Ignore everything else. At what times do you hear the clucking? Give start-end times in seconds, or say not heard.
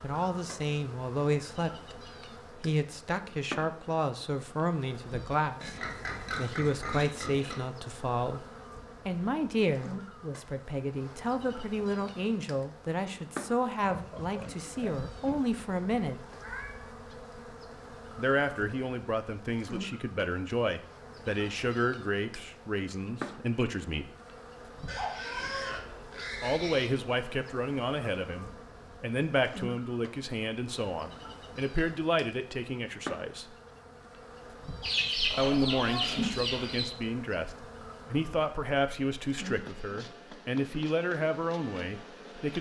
34.8-36.9.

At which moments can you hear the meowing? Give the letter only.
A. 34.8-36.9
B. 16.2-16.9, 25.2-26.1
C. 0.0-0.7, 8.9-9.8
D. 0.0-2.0
B.